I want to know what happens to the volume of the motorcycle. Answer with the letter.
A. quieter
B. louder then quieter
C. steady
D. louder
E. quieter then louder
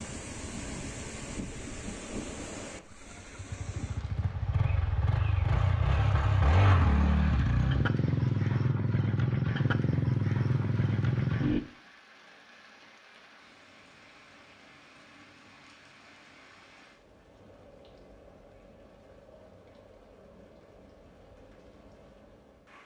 D.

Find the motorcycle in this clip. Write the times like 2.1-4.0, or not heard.
0.0-11.6.